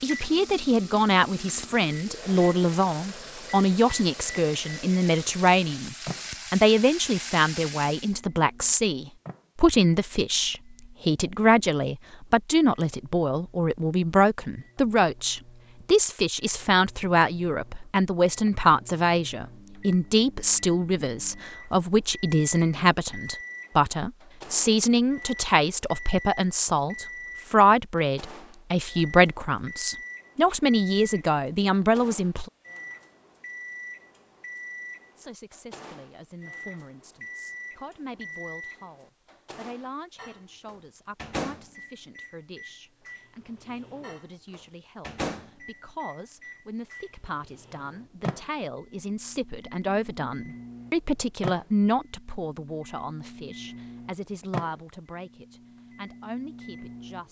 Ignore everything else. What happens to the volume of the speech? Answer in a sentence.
The volume of the speech goes down, then up.